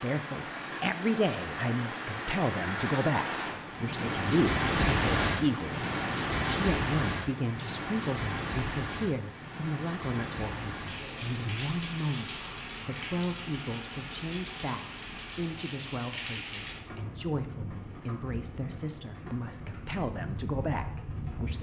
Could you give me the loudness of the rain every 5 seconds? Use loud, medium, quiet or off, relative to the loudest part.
loud, loud, medium, medium, medium.